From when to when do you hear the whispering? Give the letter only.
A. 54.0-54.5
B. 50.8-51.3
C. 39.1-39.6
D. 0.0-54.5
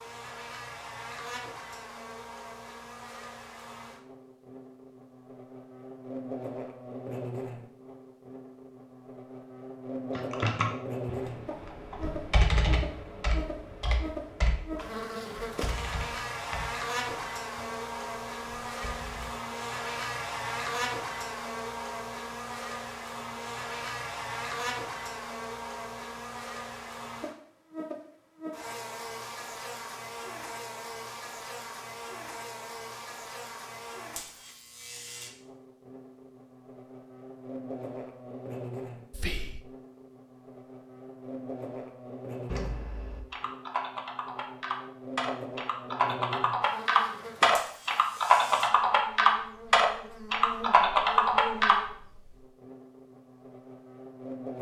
C.